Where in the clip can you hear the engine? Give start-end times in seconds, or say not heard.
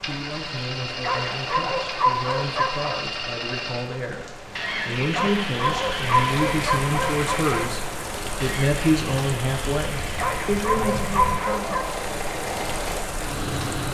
0.0-13.8.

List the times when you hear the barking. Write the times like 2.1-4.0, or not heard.
1.0-3.0, 5.1-7.7, 10.2-11.8.